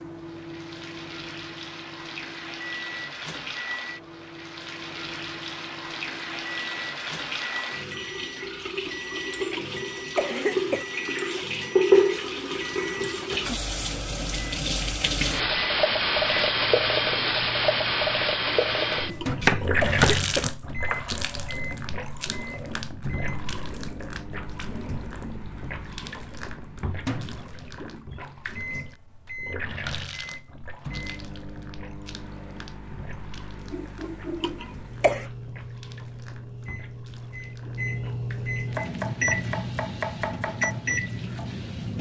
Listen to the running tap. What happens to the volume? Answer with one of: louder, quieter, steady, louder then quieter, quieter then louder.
louder then quieter.